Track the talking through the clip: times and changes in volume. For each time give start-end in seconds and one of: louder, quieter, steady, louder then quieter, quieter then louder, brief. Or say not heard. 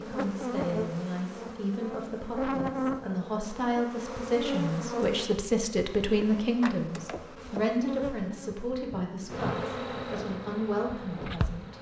0.0-11.7 louder then quieter.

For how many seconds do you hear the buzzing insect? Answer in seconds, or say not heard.
12 s.